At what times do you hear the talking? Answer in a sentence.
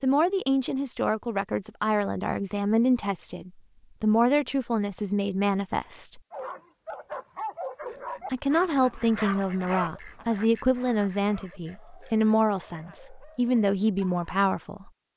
You can hear the talking from 0.0 to 6.2 s and from 8.3 to 14.9 s.